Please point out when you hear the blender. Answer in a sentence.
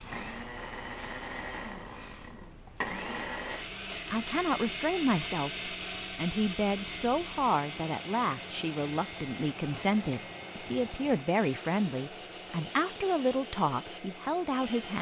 The blender can be heard from 0.0 to 14.9 s.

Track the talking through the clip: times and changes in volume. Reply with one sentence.
The talking can be heard from 4.1 to 14.9 s, at a steady volume.